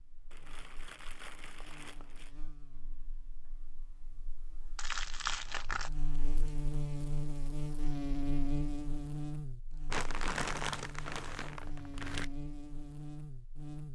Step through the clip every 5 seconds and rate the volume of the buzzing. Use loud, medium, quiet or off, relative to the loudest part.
quiet, loud, medium.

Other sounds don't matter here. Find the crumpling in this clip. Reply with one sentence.
You can hear the crumpling from 0.3 to 2.4 s, from 4.8 to 5.9 s and from 9.9 to 12.3 s.